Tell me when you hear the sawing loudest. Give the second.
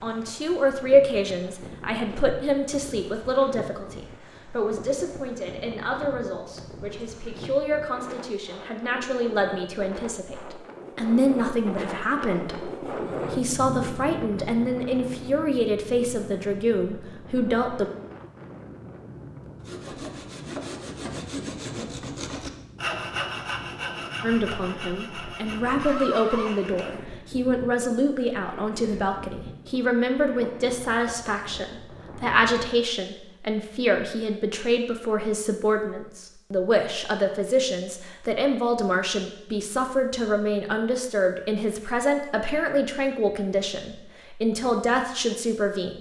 23 s.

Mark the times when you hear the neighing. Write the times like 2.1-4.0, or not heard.
25.8-27.1.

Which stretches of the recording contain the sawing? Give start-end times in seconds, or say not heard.
19.6-26.9.